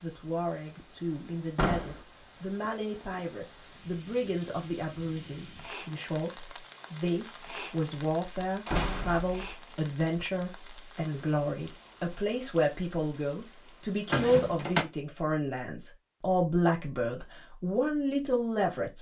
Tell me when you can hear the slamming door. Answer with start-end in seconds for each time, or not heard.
1.6-2.0, 8.7-9.6, 14.1-14.8.